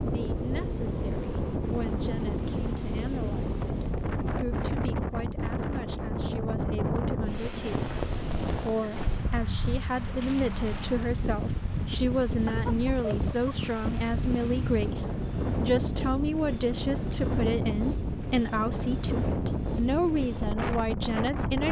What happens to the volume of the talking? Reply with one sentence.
The volume of the talking goes up.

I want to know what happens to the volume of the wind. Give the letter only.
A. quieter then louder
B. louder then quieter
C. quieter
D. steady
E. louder
D.